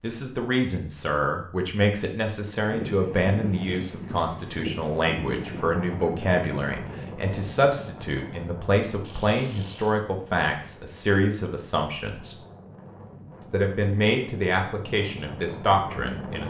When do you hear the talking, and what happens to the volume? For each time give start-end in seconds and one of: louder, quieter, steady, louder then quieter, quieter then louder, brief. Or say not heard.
0.0-12.3 steady
13.4-16.4 brief.